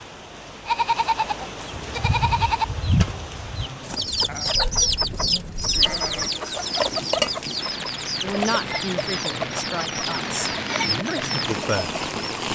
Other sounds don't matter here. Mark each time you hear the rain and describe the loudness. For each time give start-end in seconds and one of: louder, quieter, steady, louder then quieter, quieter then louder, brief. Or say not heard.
0.0-12.5 louder.